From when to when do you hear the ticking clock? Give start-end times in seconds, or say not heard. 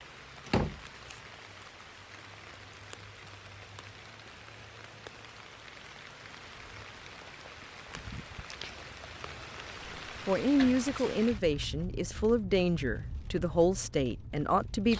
not heard.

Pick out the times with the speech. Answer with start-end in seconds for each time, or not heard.
10.2-14.9.